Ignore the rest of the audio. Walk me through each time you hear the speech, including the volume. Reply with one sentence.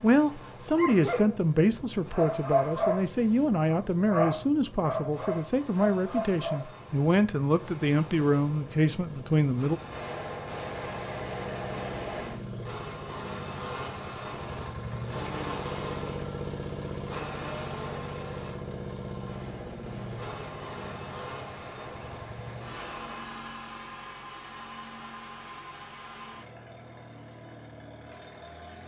The speech can be heard from 0.0 to 9.8 s, at a steady volume.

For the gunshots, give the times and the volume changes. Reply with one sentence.
You can hear the gunshots briefly from 9.8 to 12.4 s; and from 19.1 to 23.4 s, at a steady volume.